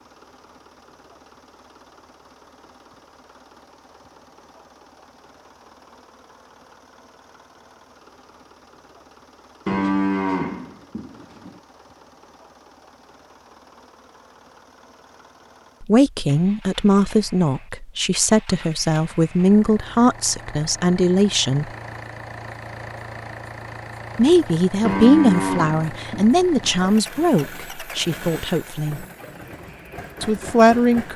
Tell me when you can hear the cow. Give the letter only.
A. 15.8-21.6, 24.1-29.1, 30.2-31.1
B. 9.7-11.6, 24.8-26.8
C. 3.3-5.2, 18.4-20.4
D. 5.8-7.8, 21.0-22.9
B.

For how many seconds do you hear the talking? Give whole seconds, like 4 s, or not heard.
12 s.